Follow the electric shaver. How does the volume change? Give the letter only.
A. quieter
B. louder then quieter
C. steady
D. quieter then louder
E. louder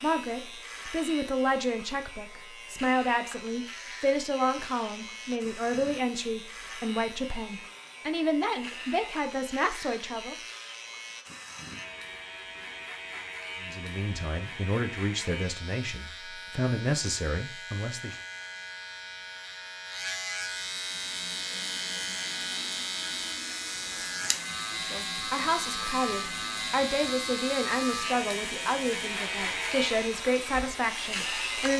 E.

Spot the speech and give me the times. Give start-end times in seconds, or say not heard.
0.0-10.3, 13.6-18.1, 24.8-31.7.